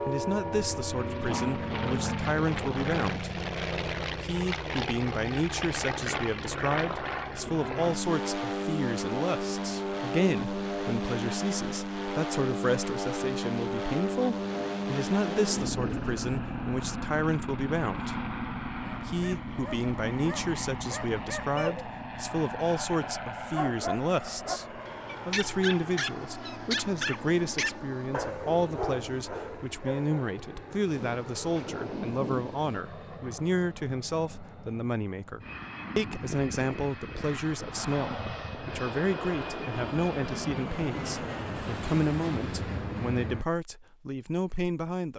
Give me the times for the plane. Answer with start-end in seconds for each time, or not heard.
0.0-43.5.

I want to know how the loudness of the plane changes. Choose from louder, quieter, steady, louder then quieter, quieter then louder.
quieter then louder.